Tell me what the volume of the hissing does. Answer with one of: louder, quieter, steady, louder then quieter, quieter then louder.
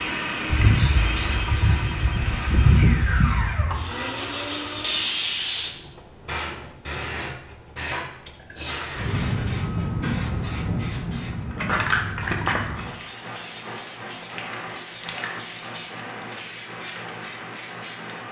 quieter.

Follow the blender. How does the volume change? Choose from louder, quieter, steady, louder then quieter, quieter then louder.
steady.